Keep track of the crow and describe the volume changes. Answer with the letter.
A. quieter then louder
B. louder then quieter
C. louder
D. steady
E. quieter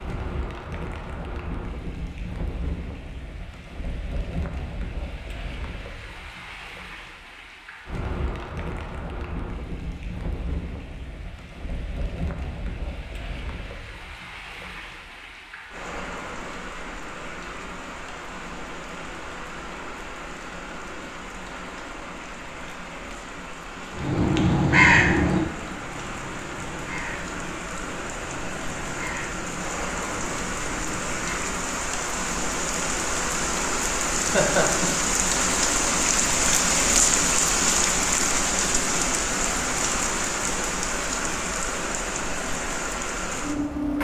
E.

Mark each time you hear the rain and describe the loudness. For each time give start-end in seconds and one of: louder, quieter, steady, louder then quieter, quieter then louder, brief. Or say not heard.
0.0-43.9 louder.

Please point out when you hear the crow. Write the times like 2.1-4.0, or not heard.
23.9-31.5.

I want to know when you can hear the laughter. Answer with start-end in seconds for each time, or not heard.
34.2-34.9.